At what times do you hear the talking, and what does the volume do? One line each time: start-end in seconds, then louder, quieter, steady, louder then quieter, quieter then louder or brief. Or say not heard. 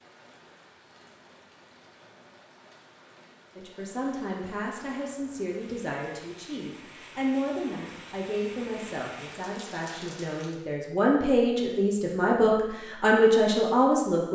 3.5-14.3 louder.